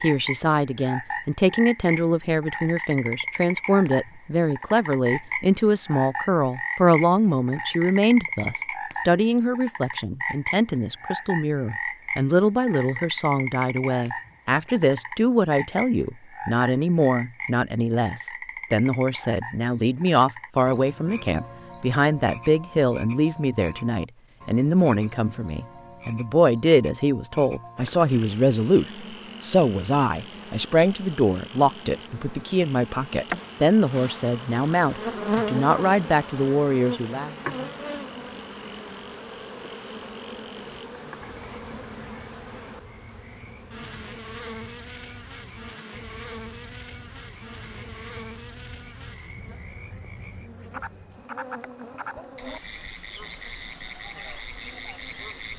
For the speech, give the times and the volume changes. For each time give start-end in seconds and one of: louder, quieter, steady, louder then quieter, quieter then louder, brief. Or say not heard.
0.0-37.3 steady.